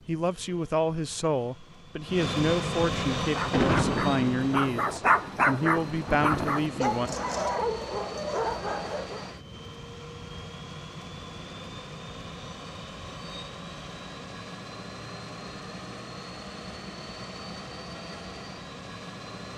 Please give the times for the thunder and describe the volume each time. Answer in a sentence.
The thunder can be heard from 3.4 to 7.4 s, getting quieter then louder.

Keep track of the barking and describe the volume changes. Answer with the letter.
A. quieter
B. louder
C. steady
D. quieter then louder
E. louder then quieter
E.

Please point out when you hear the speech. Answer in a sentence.
You can hear the speech from 0.1 to 7.1 s.